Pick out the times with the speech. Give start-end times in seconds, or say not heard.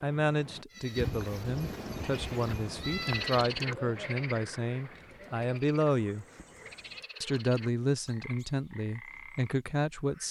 0.0-6.2, 7.2-10.2.